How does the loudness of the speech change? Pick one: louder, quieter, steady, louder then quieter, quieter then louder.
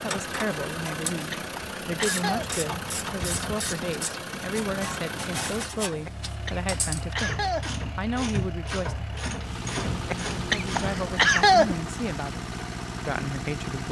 steady.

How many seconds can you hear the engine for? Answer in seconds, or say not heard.
14 s.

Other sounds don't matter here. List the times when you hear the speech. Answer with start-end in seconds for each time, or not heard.
0.0-9.1, 10.6-13.8.